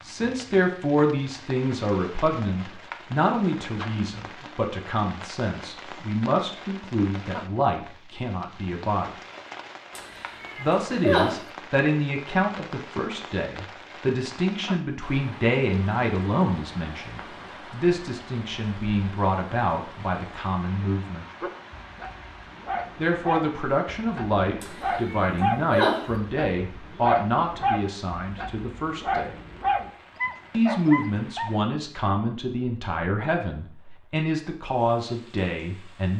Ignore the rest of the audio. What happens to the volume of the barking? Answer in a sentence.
The volume of the barking goes up.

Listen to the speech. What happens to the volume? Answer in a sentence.
The volume of the speech stays about the same.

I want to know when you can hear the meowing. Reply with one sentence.
The meowing can be heard from 9.9 to 11.5 s and from 24.6 to 26.1 s.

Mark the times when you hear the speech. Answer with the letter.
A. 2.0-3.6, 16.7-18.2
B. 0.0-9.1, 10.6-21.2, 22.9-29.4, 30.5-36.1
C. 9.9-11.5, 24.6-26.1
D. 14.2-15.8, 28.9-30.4
B.